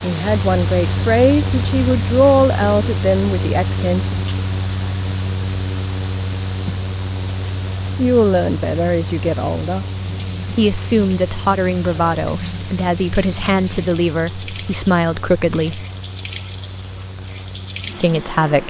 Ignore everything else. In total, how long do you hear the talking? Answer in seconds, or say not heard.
12 s.